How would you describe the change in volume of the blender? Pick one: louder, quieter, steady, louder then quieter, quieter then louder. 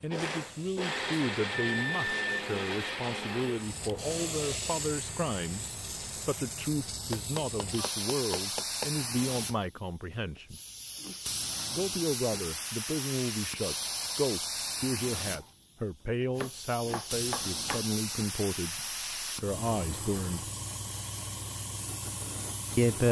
quieter.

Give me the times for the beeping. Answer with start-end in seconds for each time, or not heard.
1.5-2.5.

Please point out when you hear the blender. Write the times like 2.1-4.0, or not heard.
0.0-6.3.